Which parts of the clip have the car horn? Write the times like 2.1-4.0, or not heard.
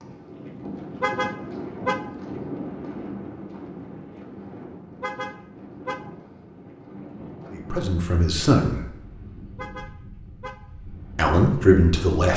1.0-2.1, 5.0-6.1, 9.6-10.7.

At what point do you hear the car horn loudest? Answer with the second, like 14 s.
1 s.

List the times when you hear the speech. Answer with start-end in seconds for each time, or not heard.
7.5-8.8, 11.2-12.3.